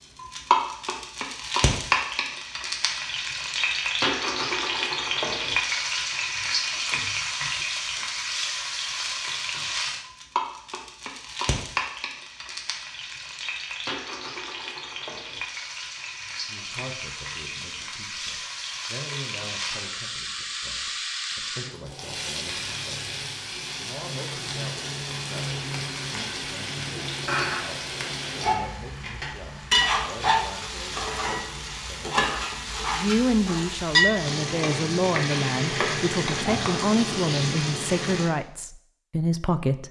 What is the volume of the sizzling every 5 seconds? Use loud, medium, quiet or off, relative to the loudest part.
loud, loud, medium, medium, medium, loud, loud, loud.